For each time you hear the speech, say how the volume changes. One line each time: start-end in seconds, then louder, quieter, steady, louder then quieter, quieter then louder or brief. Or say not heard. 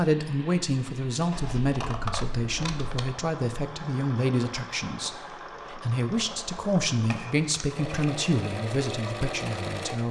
0.0-10.0 steady.